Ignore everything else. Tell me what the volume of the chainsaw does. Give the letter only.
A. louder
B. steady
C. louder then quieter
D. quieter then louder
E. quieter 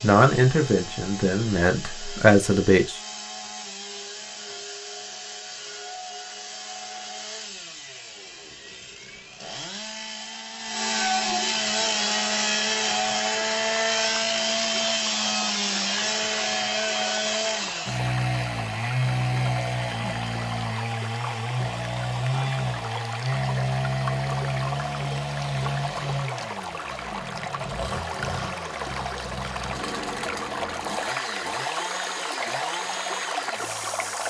C.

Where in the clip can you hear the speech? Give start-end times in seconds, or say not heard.
0.0-3.0.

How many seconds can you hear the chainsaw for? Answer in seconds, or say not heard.
34 s.